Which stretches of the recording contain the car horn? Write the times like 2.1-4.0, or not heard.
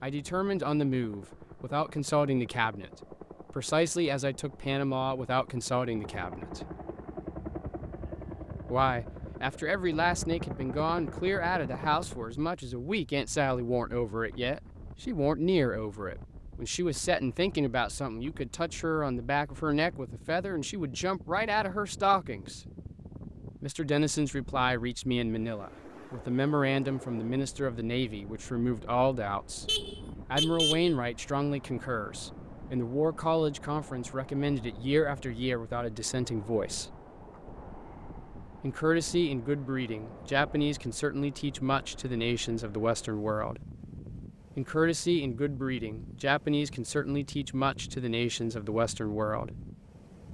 29.6-30.9.